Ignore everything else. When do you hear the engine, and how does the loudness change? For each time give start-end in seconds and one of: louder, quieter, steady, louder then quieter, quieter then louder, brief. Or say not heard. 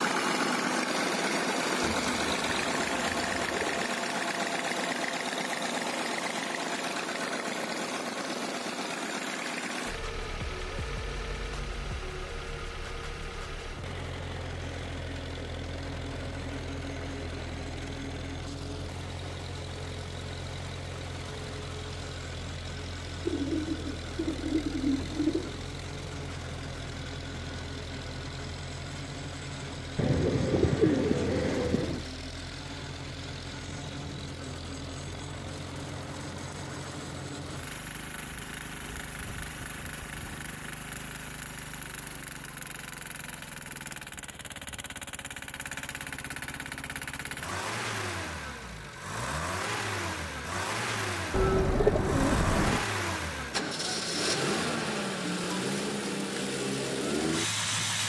0.0-58.0 quieter then louder.